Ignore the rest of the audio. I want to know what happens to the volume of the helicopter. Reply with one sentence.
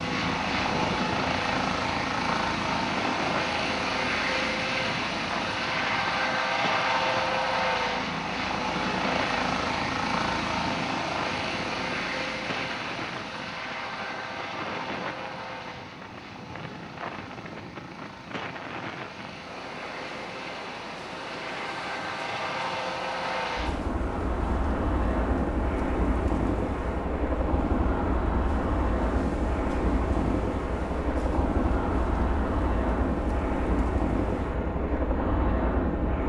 The loudness of the helicopter goes down, then up.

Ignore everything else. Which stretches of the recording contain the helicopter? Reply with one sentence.
You can hear the helicopter from 0.0 to 36.2 s.